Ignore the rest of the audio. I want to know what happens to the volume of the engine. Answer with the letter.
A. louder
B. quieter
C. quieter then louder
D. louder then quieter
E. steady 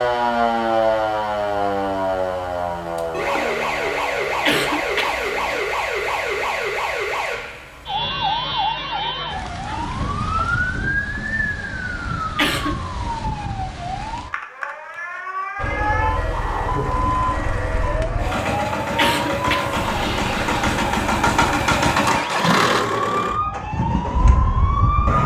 D.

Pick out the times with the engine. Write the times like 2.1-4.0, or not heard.
15.6-25.2.